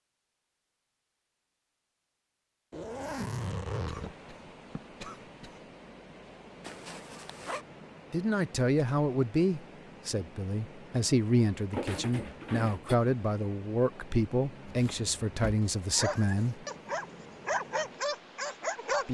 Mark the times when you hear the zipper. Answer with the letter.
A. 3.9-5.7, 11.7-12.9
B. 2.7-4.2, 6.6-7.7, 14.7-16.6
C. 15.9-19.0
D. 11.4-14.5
B.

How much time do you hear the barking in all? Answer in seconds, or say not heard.
3 s.